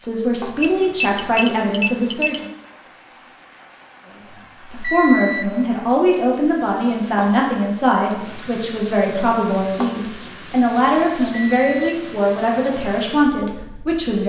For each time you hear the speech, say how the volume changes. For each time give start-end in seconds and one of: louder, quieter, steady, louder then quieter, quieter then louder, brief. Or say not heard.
0.0-2.5 brief
4.7-14.2 steady.